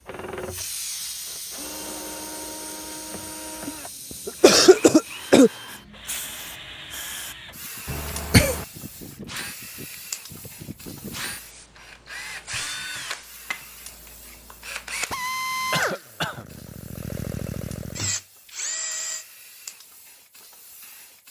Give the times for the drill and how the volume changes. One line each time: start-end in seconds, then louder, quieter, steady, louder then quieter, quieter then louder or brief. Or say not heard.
0.1-19.2 louder.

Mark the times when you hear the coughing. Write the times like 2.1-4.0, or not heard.
3.6-5.5, 7.8-8.7, 15.7-16.4.